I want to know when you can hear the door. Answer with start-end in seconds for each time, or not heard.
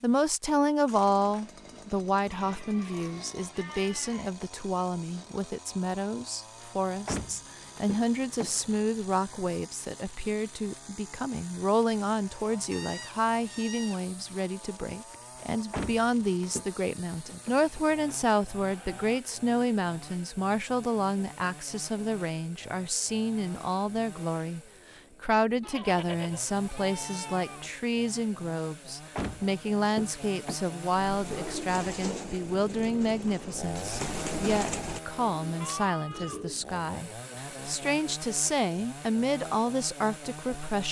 7.0-8.8, 15.7-16.6, 29.1-30.6.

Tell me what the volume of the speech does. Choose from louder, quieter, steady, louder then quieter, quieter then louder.
steady.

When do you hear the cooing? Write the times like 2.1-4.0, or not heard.
31.1-36.5.